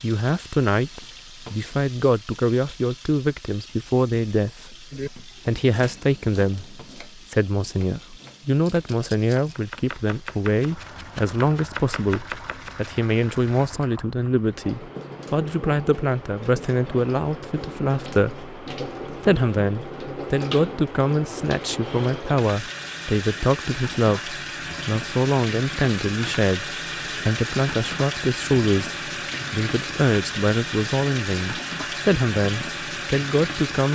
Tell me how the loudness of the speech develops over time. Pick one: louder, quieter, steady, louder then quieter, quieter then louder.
steady.